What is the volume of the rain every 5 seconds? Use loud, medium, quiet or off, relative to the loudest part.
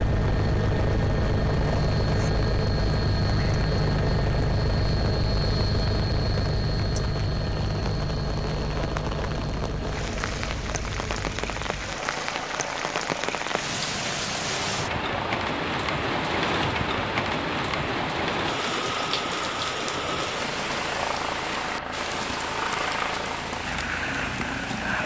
quiet, medium, loud, loud, medium.